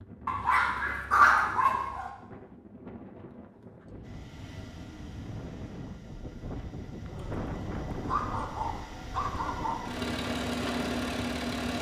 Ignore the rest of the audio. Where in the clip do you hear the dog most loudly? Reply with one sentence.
The volume of the dog peaks at 1 second.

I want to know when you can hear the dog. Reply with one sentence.
You can hear the dog from 0.2 to 2.1 s and from 7.0 to 9.8 s.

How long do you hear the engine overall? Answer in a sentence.
You can hear the engine for 8 seconds altogether.